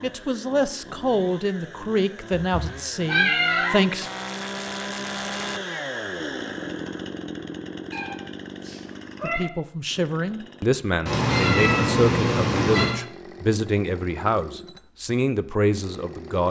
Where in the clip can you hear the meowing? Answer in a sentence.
The meowing can be heard from 2.3 to 3.8 s, from 7.9 to 9.4 s and from 11.1 to 12.9 s.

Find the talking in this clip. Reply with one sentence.
You can hear the talking from 0.0 to 4.0 s and from 9.2 to 16.4 s.